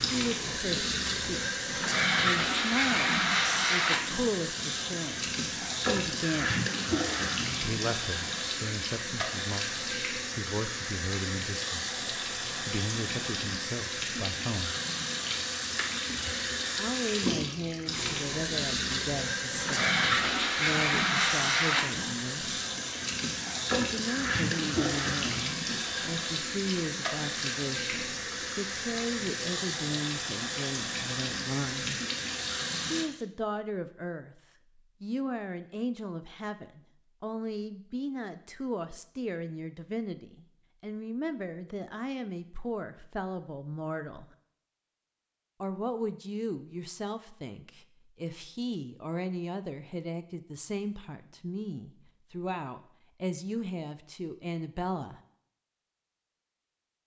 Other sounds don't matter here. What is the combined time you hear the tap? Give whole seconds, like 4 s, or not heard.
33 s.